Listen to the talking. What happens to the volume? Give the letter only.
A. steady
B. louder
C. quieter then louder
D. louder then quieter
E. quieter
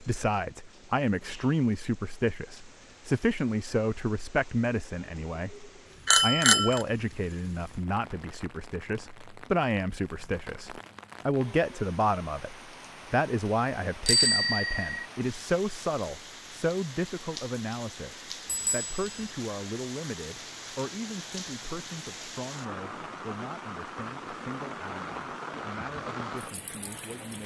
E.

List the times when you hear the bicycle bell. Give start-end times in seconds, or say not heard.
6.0-6.8, 14.1-15.1, 18.4-19.3.